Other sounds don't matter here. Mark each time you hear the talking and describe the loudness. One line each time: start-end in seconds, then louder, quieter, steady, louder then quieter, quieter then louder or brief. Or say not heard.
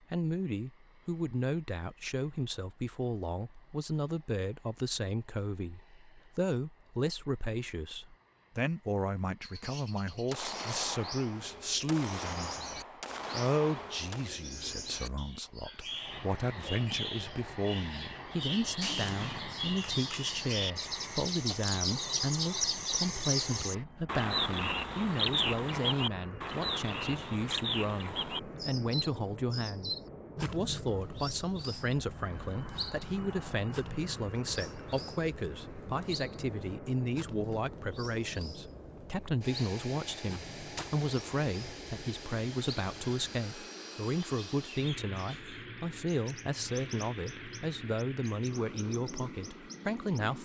0.1-50.4 steady.